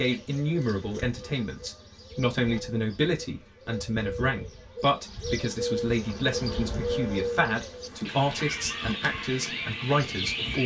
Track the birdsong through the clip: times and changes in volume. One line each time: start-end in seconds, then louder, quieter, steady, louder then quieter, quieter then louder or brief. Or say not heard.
0.0-10.6 louder.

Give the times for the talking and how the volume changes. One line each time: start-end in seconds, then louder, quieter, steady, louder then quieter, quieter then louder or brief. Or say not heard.
0.0-10.6 steady.